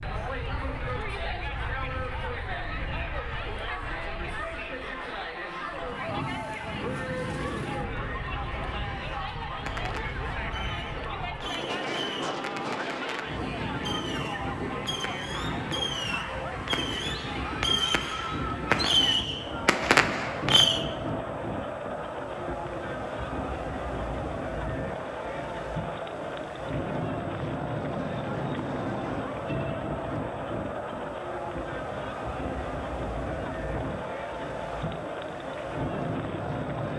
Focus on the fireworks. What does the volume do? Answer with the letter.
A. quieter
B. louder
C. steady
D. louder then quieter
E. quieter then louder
B.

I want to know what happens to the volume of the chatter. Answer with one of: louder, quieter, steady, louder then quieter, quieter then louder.
steady.